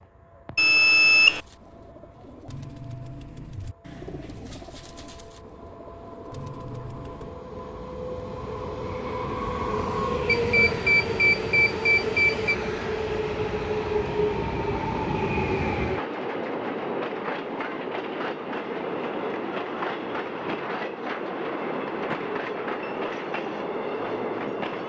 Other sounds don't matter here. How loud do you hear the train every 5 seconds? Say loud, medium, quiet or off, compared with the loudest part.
quiet, medium, loud, loud, loud.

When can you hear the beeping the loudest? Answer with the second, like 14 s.
1 s.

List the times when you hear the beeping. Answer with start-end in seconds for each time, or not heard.
0.6-1.4, 10.2-12.6, 21.9-22.9.